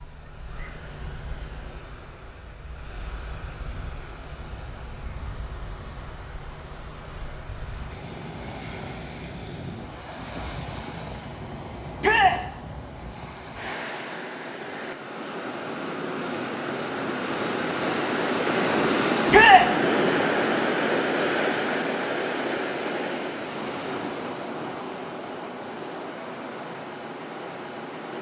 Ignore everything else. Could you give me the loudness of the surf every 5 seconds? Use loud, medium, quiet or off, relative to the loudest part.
quiet, quiet, medium, loud, loud, medium.